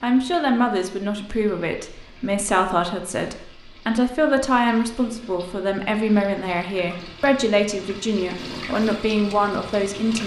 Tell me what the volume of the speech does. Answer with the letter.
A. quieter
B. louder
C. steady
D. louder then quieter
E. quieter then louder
C.